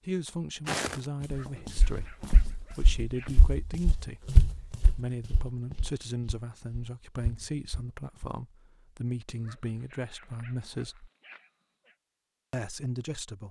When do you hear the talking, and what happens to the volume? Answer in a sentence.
The talking can be heard from 0.1 to 11.1 s, at a steady volume; and briefly from 12.5 to 13.4 s.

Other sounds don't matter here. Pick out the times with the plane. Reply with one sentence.
You can't hear the plane here.